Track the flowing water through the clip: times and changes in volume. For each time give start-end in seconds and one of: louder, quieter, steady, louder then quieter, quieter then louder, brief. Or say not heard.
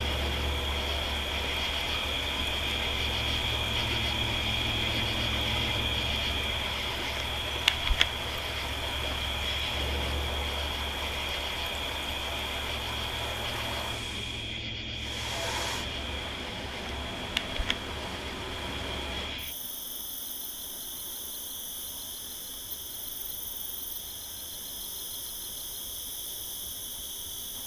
0.0-27.6 quieter.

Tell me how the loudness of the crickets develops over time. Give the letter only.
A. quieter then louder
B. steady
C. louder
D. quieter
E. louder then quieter
D.